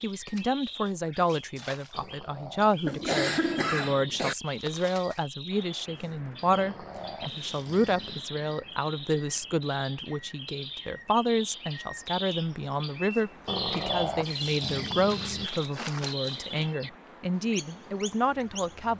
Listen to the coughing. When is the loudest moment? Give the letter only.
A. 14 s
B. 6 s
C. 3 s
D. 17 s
C.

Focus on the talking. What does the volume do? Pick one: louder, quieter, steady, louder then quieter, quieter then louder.
steady.